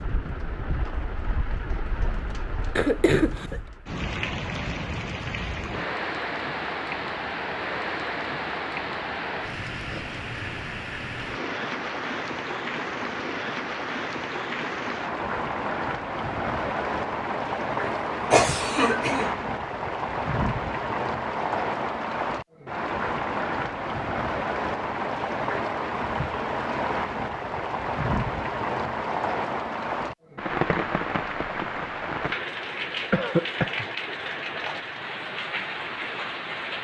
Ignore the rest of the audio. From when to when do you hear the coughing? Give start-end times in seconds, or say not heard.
2.8-3.6, 18.3-19.3, 33.1-33.9.